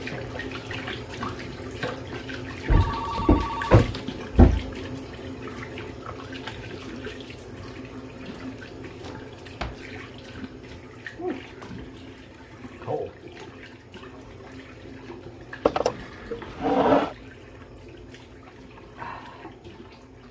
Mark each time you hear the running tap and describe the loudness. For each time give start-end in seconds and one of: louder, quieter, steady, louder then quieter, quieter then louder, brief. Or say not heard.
0.0-20.2 quieter.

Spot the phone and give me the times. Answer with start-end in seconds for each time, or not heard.
2.7-4.2.